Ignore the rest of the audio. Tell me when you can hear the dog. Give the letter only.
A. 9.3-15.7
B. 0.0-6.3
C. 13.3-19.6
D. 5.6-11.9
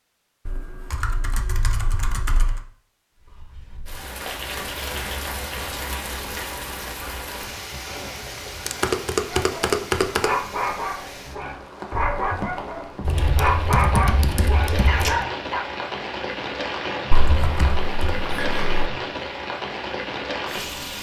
A.